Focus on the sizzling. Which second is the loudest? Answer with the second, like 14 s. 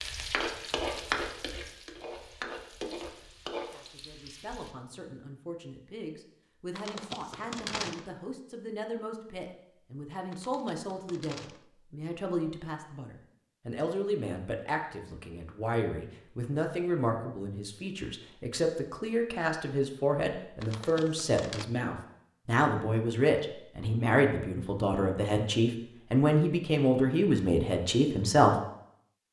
1 s.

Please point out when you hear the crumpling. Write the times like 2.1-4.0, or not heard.
6.8-8.1, 10.3-11.7, 20.6-21.6.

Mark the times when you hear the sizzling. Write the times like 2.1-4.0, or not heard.
0.0-4.8.